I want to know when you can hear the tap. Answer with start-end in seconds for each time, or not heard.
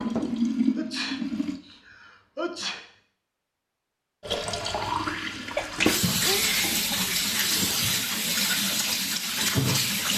0.0-1.6, 4.2-10.1.